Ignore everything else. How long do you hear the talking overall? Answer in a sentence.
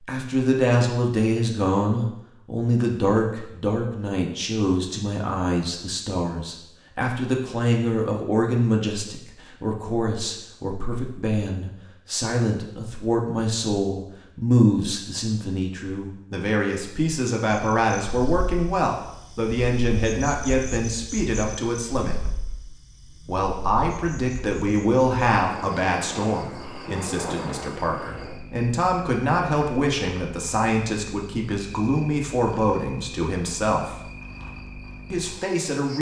You can hear the talking for 34 seconds altogether.